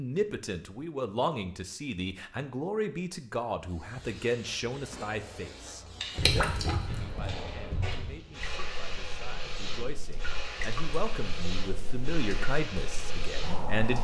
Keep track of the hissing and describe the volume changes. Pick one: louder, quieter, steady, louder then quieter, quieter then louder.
louder.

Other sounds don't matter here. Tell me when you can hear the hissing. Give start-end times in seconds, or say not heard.
3.6-13.9.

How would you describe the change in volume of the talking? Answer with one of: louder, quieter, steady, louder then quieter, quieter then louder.
quieter then louder.